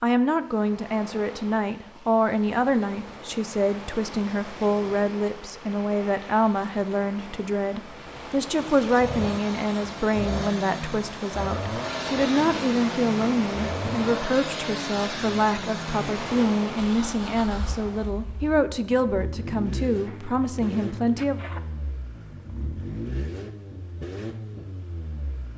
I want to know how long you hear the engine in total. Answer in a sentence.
The engine can be heard for 17 seconds in total.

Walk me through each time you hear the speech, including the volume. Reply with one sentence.
The speech can be heard from 0.0 to 21.4 s, at a steady volume.